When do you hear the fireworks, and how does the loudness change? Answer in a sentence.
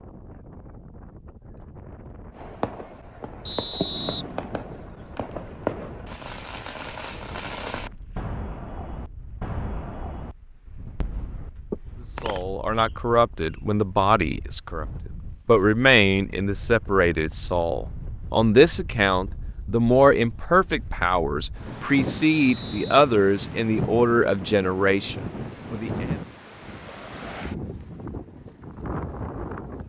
You can hear the fireworks from 2.4 to 12.4 s, at a steady volume.